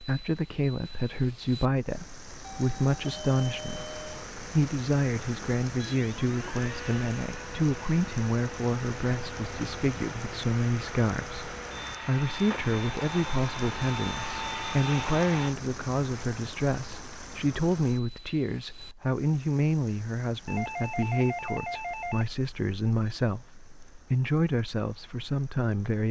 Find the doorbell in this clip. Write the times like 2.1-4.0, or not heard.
2.4-4.2, 20.4-22.2.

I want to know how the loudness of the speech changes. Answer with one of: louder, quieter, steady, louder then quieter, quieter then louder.
steady.